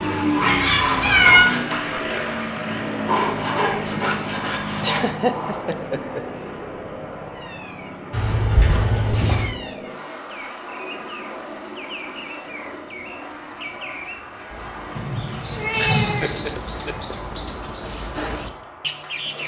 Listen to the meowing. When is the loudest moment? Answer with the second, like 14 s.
1 s.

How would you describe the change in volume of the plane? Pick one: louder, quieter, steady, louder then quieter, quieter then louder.
quieter.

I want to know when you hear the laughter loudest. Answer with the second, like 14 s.
5 s.